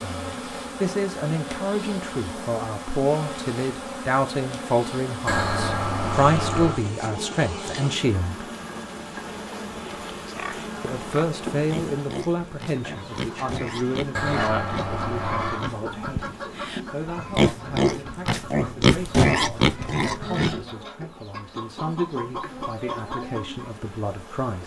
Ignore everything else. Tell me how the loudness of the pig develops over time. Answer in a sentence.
The loudness of the pig goes up.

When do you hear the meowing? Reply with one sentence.
The meowing can be heard from 5.2 to 6.8 s and from 14.1 to 15.7 s.